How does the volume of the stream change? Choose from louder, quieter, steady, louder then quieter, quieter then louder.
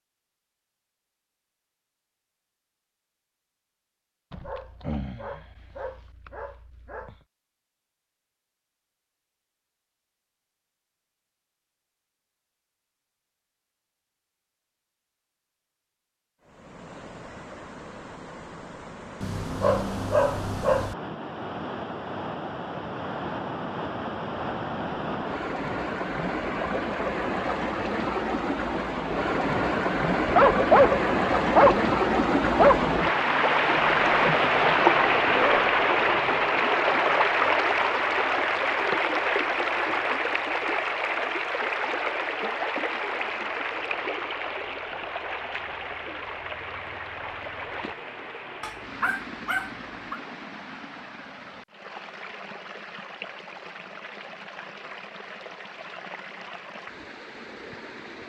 louder then quieter.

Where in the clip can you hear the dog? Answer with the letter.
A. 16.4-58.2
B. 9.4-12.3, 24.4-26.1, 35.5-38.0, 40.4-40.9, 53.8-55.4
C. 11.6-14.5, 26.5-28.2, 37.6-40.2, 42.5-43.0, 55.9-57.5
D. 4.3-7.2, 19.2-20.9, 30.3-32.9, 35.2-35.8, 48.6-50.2
D.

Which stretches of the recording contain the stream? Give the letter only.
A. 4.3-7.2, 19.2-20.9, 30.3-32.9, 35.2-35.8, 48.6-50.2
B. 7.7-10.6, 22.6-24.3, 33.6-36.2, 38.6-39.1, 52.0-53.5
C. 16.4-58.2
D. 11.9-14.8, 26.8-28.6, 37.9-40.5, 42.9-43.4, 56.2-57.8
C.